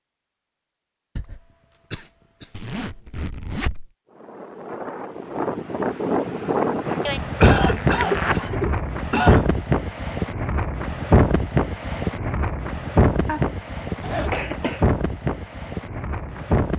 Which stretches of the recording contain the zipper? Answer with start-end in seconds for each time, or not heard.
2.5-3.9, 6.8-8.4, 14.0-14.5.